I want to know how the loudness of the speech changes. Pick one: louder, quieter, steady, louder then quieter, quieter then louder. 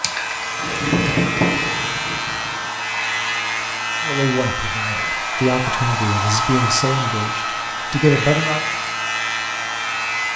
louder.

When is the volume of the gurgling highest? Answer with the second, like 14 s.
1 s.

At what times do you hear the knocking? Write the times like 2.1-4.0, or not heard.
0.8-2.4.